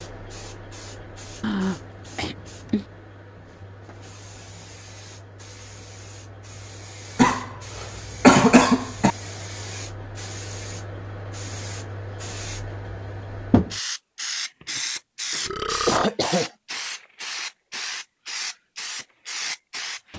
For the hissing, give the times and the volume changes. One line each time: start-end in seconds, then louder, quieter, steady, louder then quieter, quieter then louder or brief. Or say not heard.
0.0-20.1 louder.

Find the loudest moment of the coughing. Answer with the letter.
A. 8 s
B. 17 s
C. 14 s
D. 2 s
A.